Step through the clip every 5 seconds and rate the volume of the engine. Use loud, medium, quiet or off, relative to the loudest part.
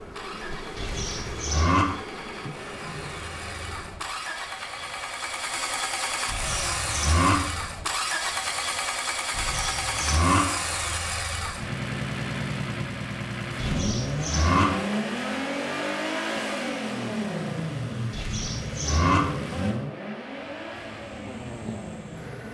medium, loud, loud, loud, medium.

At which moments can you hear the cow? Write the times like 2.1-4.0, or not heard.
0.8-1.9, 6.2-7.3, 9.3-10.4, 13.6-14.7, 18.1-19.2.